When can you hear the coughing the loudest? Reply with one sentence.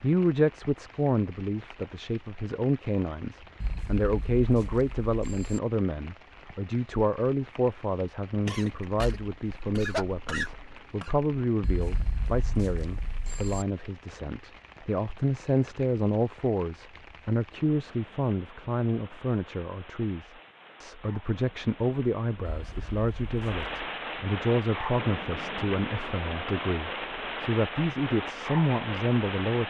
The loudest moment of the coughing is at 10 seconds.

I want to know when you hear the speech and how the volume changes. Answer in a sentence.
You can hear the speech from 0.0 to 29.6 s, at a steady volume.